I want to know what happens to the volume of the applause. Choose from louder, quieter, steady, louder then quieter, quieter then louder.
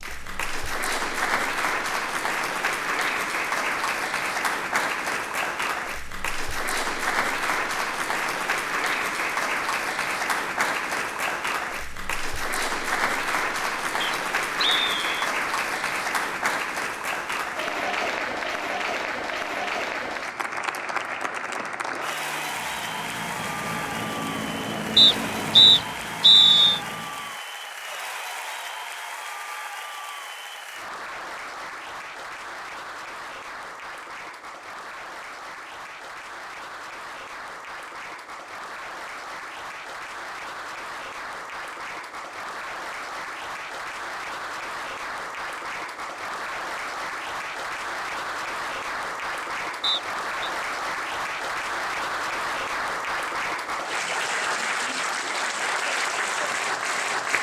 quieter then louder.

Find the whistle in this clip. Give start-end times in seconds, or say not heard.
14.0-15.3, 24.9-26.8, 49.8-50.5.